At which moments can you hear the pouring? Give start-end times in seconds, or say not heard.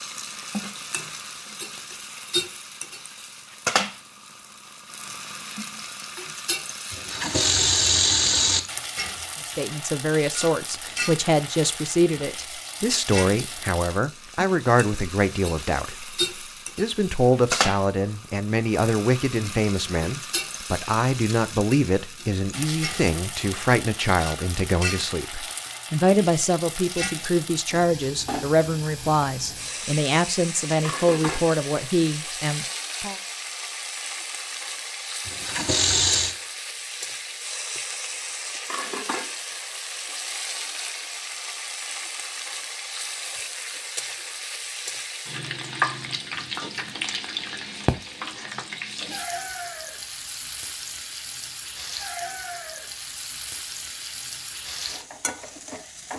6.9-8.6, 35.2-36.4.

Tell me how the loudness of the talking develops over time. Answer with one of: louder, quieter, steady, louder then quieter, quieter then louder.
steady.